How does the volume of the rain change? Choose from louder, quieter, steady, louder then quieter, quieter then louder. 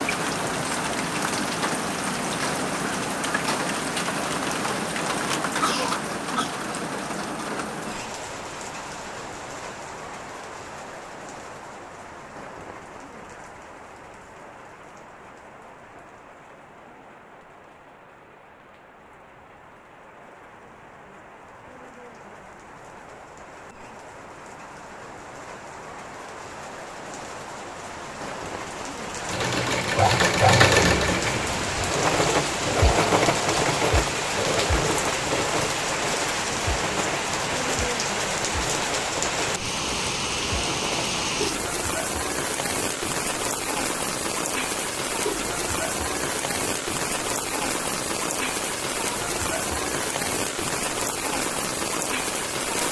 quieter then louder.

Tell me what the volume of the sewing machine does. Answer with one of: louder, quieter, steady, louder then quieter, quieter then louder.
quieter.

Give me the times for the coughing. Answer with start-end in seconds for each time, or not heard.
5.5-6.5.